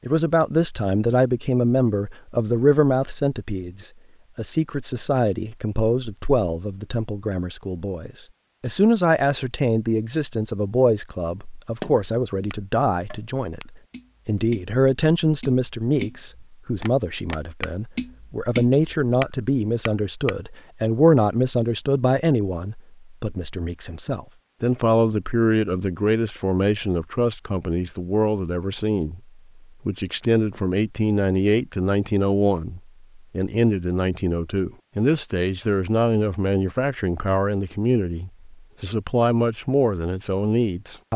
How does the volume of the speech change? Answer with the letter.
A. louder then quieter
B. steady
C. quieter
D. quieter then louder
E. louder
B.